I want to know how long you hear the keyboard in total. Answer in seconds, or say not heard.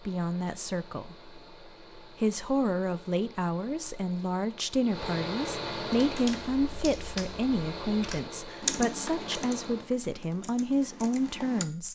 6 s.